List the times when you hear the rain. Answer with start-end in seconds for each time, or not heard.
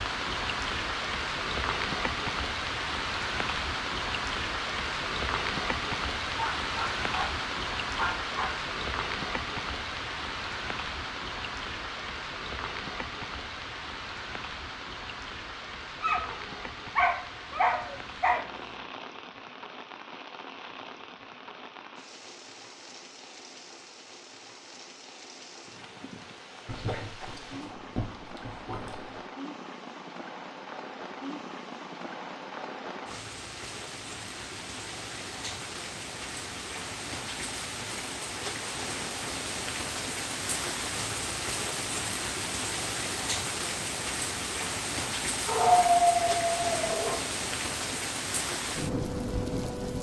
0.0-49.9.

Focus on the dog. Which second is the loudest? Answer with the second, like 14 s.
46 s.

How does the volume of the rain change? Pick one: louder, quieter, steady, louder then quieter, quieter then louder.
quieter then louder.